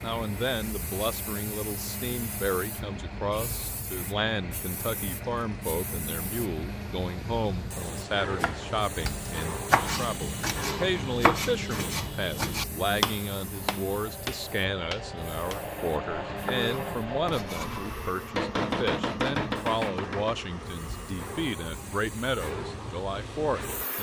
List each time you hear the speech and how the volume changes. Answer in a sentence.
You can hear the speech from 0.0 to 23.9 s, at a steady volume.